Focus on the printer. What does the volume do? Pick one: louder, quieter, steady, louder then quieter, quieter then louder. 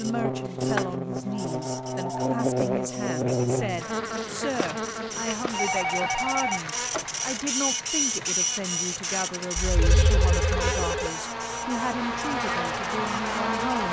louder then quieter.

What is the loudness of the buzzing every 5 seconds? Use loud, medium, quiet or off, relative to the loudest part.
loud, medium, loud.